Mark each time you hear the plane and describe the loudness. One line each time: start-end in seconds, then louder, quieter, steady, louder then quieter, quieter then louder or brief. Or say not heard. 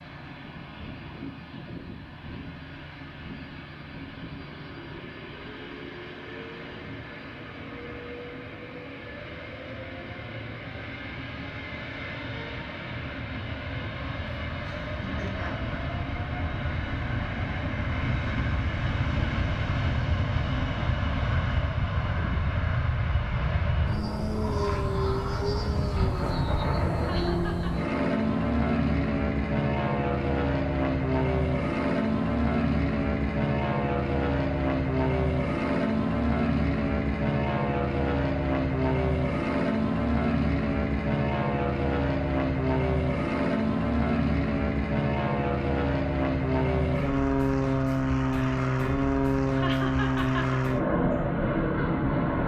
0.0-52.4 louder.